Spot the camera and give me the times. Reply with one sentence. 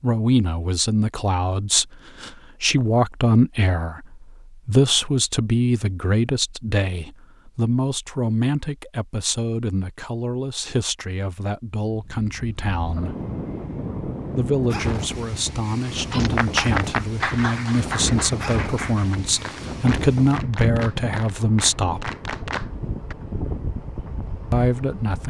The camera can't be heard in this clip.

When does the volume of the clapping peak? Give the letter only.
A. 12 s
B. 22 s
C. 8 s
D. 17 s
D.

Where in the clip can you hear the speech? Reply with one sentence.
You can hear the speech from 0.0 to 13.2 s, from 14.3 to 22.1 s and from 24.5 to 25.2 s.